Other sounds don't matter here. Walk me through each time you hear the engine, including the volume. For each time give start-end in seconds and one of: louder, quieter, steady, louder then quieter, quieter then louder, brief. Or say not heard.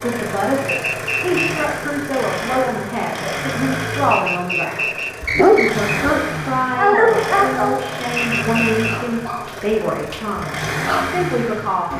0.0-11.9 steady.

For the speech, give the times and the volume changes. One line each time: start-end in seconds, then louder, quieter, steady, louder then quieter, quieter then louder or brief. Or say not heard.
0.0-11.9 steady.